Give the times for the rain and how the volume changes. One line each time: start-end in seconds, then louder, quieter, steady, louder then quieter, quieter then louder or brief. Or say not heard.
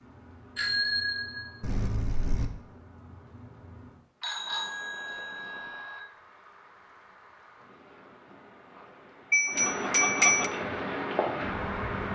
0.0-12.1 louder.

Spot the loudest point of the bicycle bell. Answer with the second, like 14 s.
10 s.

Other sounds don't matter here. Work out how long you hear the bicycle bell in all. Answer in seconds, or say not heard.
5 s.